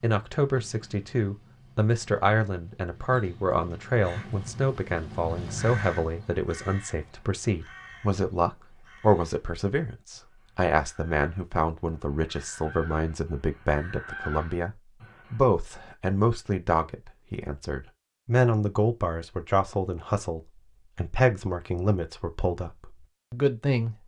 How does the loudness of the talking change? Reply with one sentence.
The loudness of the talking stays about the same.